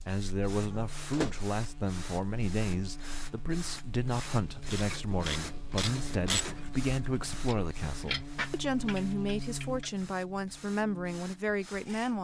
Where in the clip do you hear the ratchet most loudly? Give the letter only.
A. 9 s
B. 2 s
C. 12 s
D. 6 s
D.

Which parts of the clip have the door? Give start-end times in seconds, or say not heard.
0.7-1.4.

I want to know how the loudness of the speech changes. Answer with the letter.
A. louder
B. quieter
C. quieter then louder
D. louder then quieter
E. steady
E.